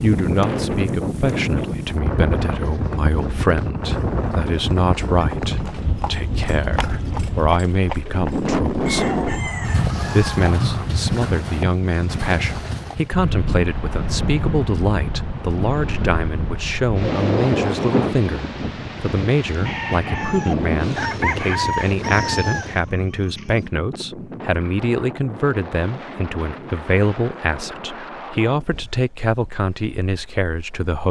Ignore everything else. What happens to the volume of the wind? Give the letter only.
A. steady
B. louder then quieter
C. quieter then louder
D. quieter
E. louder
D.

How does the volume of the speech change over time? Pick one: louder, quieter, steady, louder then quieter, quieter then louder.
steady.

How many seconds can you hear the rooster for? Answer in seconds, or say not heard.
6 s.